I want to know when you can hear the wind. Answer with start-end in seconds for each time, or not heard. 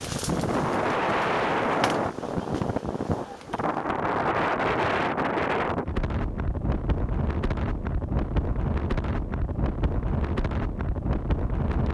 0.0-11.8.